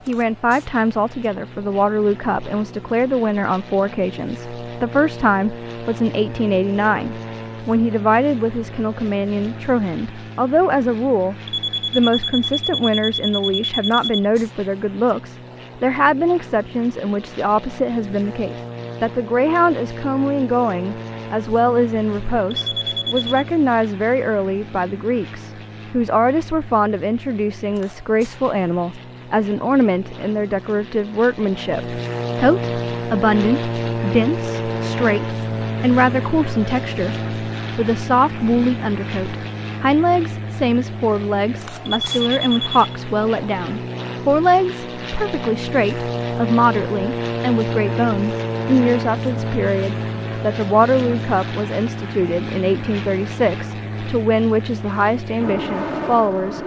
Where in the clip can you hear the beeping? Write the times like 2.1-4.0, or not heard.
11.4-14.2, 22.5-23.4, 41.9-43.0.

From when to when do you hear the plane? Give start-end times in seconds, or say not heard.
0.0-56.6.